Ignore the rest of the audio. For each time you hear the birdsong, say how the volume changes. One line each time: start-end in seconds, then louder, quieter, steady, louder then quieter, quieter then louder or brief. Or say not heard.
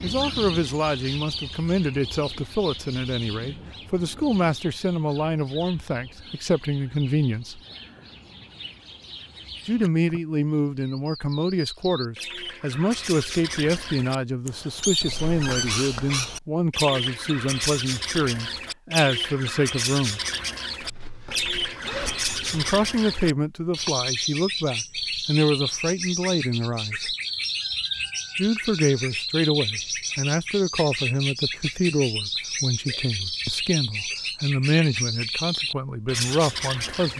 0.0-37.1 louder.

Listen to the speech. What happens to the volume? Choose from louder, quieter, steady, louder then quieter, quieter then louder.
steady.